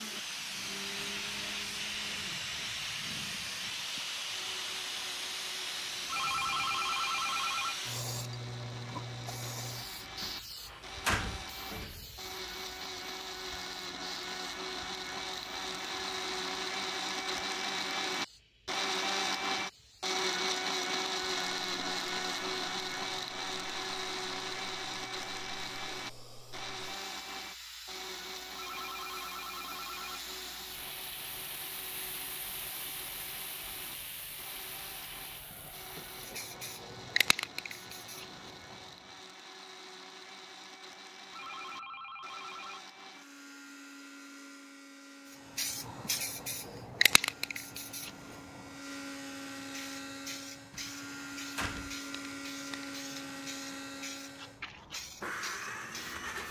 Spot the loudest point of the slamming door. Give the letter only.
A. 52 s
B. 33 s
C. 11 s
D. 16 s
C.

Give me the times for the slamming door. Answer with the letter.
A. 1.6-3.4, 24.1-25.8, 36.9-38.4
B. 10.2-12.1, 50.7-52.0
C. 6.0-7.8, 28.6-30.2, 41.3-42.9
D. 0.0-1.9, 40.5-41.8
B.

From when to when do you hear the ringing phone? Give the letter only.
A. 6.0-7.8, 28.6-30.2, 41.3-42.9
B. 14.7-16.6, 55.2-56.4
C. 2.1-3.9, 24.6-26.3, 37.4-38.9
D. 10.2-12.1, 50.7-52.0
A.